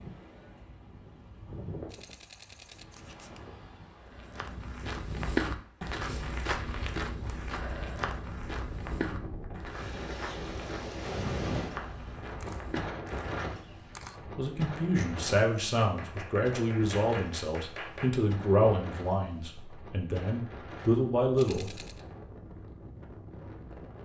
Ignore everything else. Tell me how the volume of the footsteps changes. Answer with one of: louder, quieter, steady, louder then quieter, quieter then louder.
quieter.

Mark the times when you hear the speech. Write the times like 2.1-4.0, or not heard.
14.3-21.7.